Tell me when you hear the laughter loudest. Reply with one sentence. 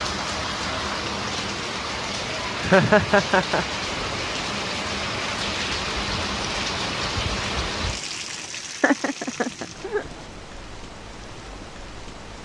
The loudest moment of the laughter is at 3 seconds.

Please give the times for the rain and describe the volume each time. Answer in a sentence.
The rain can be heard from 0.0 to 12.4 s, getting quieter.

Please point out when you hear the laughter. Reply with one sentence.
You can hear the laughter from 2.6 to 3.8 s and from 8.5 to 10.1 s.